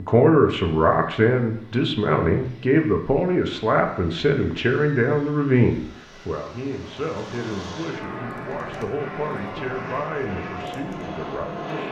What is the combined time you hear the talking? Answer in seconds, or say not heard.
12 s.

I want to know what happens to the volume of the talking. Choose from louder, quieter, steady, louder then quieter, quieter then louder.
quieter.